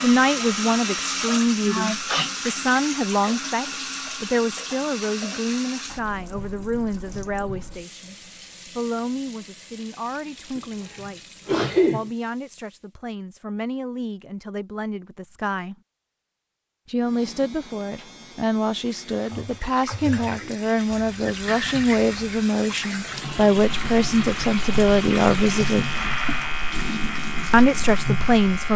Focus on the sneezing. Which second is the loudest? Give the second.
12 s.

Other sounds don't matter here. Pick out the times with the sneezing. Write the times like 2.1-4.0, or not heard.
1.6-2.3, 10.6-12.1, 20.9-22.4.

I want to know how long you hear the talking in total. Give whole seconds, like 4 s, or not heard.
26 s.